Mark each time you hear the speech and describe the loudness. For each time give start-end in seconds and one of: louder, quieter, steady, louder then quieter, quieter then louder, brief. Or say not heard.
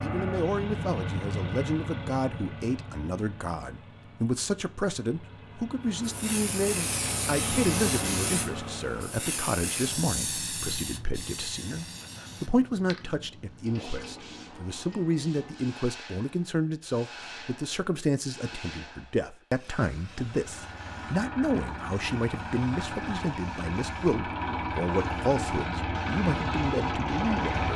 0.0-27.7 steady.